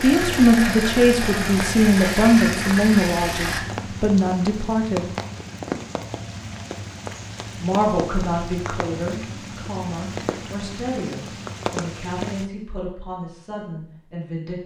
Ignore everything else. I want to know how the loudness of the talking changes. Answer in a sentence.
The volume of the talking goes down.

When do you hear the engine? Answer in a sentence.
The engine can be heard from 0.0 to 3.6 s.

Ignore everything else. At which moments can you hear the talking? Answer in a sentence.
You can hear the talking from 0.0 to 5.1 s and from 7.5 to 14.6 s.